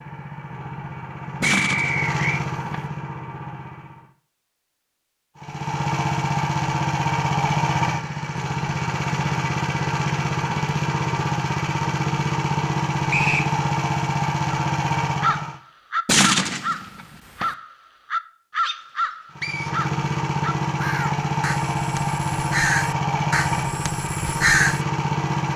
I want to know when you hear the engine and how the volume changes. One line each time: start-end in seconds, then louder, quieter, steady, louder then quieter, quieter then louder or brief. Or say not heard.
0.0-4.1 louder then quieter
5.3-15.6 steady
19.3-25.5 steady.